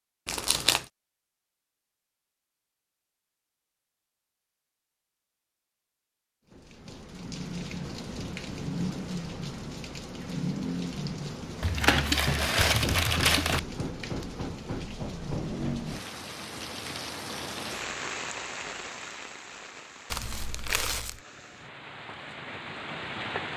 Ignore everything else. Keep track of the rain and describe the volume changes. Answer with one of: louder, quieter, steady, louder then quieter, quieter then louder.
quieter.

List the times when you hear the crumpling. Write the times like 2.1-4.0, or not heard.
0.2-0.8, 11.6-13.6, 20.1-21.2.